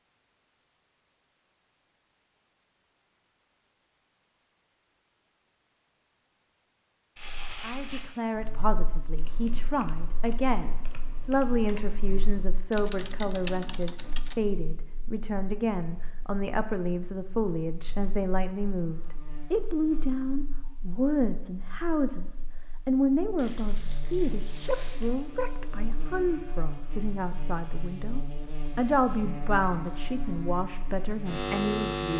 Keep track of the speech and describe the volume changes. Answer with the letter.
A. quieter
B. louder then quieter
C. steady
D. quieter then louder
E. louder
C.